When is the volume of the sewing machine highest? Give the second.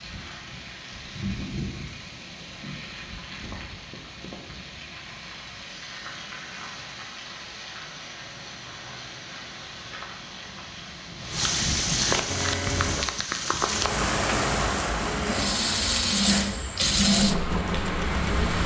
17 s.